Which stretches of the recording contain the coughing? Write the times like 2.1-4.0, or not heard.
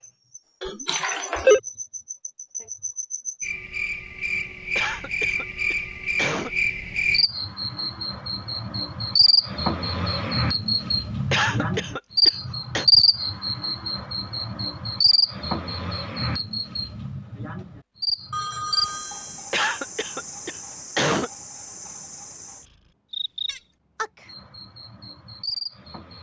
4.8-6.5, 11.3-12.8, 19.5-21.3.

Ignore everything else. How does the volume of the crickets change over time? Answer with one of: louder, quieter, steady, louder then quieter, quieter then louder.
louder then quieter.